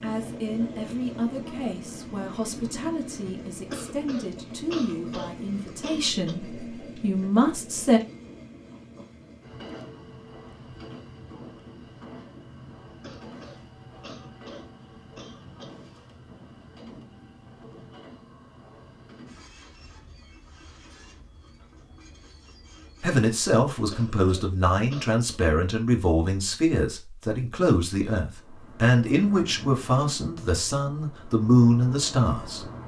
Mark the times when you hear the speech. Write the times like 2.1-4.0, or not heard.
0.0-8.0, 23.0-32.6.